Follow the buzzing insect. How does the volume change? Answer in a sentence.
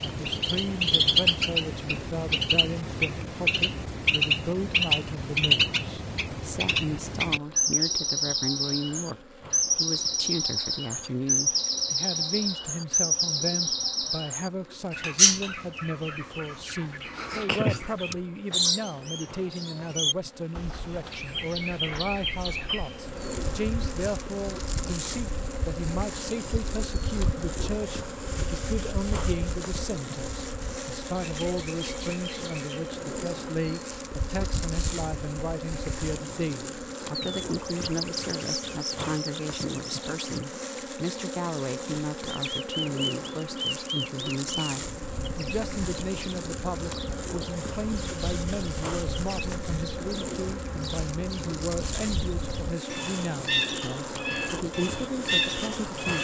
The loudness of the buzzing insect goes up.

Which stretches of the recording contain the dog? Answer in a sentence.
You can't hear the dog here.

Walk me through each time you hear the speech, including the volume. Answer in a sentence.
The speech can be heard from 0.0 to 56.1 s, at a steady volume.